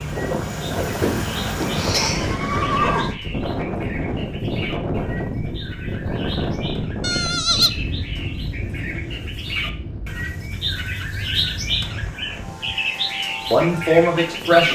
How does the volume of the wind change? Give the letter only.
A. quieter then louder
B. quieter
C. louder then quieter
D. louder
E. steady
B.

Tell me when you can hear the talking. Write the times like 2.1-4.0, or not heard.
13.5-14.6.